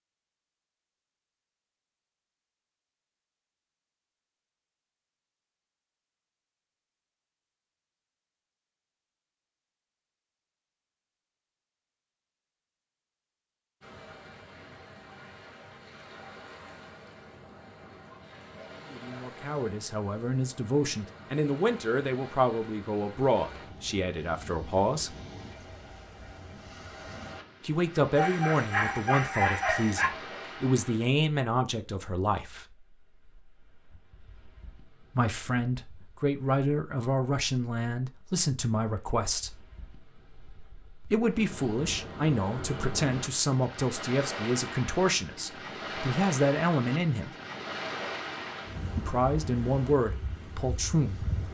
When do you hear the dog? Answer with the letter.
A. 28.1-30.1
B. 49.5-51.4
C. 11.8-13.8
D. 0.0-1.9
A.